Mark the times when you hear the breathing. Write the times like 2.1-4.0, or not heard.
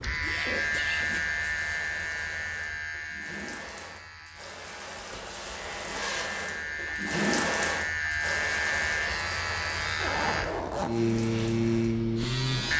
not heard.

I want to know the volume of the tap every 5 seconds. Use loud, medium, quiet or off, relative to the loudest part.
medium, loud, medium.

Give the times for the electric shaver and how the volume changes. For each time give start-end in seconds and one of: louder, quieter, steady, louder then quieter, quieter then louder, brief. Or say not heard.
0.0-12.7 quieter then louder.